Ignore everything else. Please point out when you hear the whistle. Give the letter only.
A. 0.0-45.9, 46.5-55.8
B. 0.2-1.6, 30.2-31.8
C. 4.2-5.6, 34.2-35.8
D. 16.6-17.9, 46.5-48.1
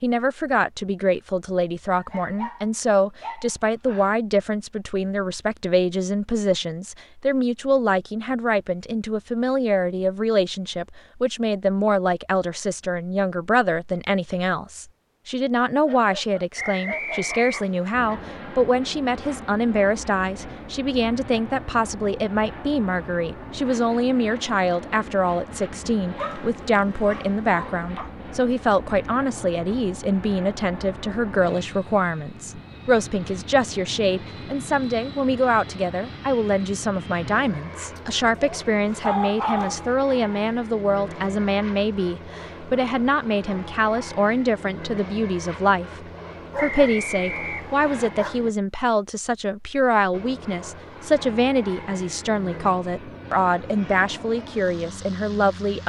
D.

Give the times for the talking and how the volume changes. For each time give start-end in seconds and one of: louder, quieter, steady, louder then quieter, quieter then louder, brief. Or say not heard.
0.0-45.9 steady
46.5-55.8 steady.